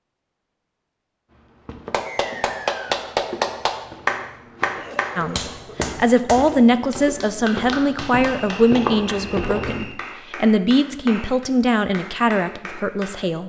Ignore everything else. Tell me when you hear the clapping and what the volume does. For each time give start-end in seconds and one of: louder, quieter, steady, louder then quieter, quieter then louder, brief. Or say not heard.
1.9-13.2 quieter.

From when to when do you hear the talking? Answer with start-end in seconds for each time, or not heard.
5.2-13.4.